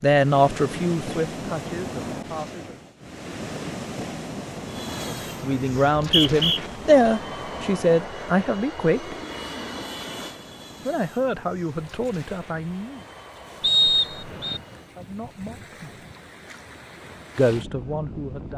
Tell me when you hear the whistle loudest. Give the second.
14 s.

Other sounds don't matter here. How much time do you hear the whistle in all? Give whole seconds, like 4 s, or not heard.
2 s.